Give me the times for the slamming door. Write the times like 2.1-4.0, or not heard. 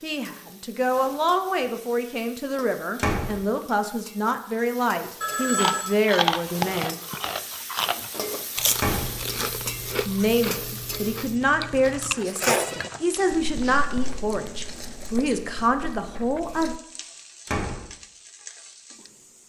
3.0-3.4, 8.8-9.2, 17.4-17.9.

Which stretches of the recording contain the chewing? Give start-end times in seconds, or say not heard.
5.5-16.8.